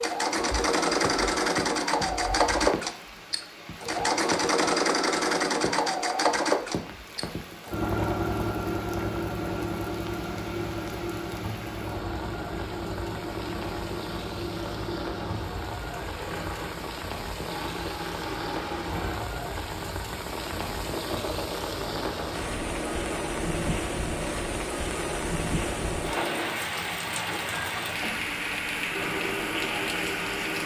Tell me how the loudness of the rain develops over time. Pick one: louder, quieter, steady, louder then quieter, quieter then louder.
louder.